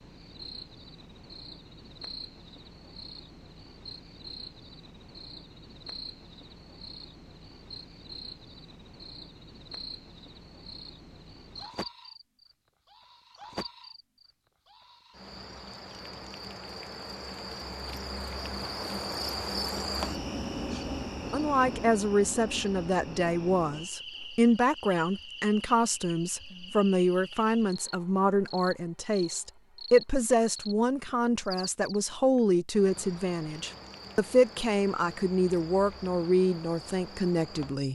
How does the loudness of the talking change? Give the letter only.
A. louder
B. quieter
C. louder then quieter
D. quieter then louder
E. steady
E.